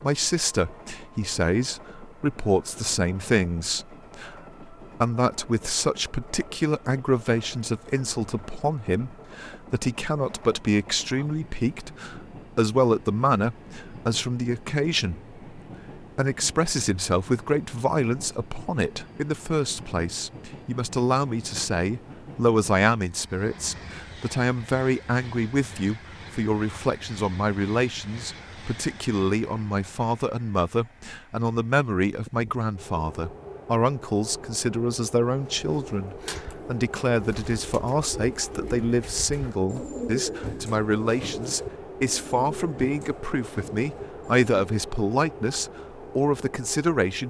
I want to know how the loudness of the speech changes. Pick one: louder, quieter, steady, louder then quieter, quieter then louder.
steady.